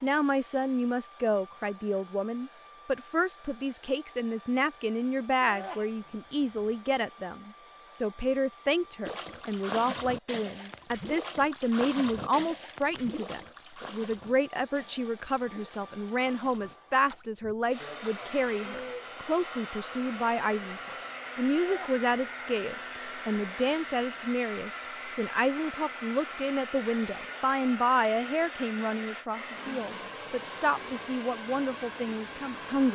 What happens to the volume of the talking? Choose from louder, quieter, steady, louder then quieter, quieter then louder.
steady.